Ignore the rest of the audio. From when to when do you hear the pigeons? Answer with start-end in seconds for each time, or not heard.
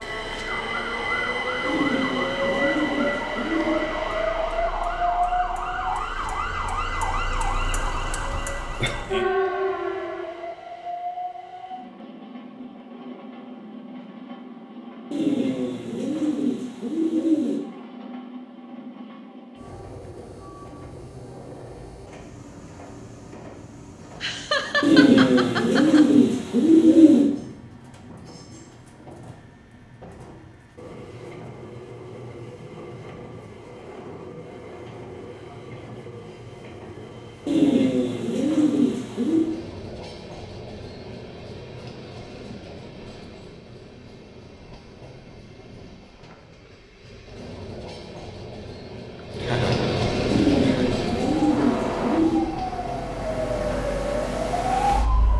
1.6-3.8, 15.1-17.6, 24.8-27.3, 37.5-39.5, 50.3-52.5.